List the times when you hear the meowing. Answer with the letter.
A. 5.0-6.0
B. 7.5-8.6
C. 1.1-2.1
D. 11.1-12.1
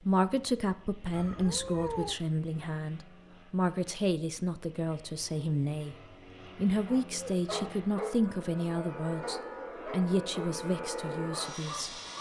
C.